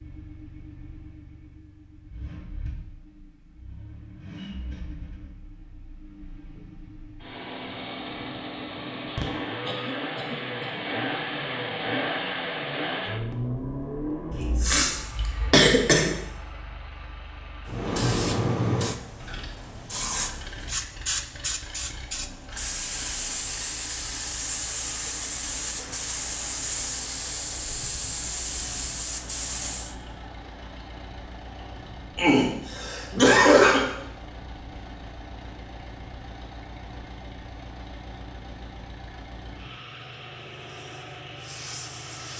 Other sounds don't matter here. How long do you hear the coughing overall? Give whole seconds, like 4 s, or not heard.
5 s.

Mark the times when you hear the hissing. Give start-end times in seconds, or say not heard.
17.6-29.9, 40.5-42.3.